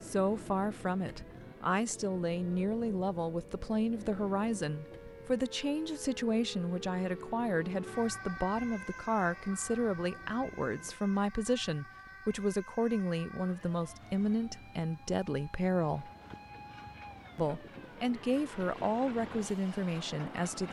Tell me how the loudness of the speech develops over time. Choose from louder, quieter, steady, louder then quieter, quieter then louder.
steady.